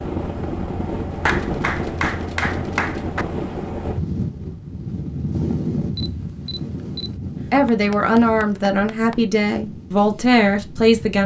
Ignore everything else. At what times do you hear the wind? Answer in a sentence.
You can hear the wind from 0.0 to 11.2 s.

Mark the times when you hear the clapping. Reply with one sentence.
The clapping can be heard from 1.2 to 3.2 s and from 7.3 to 9.2 s.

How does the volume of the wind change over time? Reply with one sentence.
The loudness of the wind goes down.